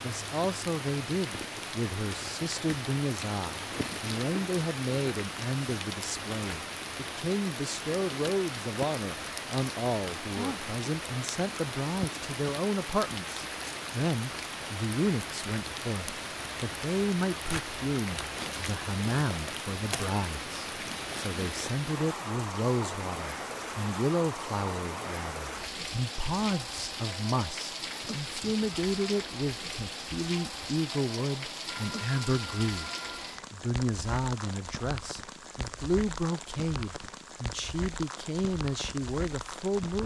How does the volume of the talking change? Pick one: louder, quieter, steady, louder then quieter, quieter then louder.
steady.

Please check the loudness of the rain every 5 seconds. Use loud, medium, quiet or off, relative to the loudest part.
loud, loud, loud, loud, loud, loud, loud, medium.